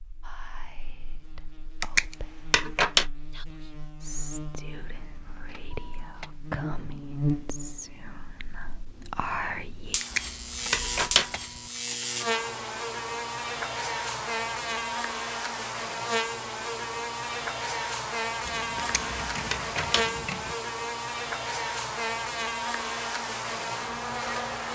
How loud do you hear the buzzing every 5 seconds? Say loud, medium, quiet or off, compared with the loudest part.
quiet, loud, loud, loud, loud.